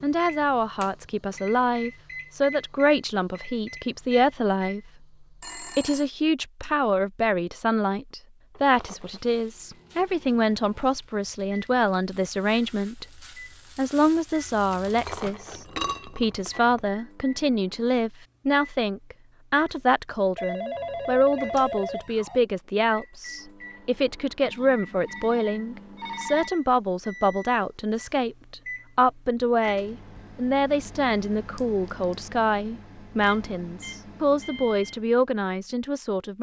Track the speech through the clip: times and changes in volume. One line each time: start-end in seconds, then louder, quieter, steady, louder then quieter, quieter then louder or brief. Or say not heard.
0.0-4.8 steady
5.6-36.3 steady.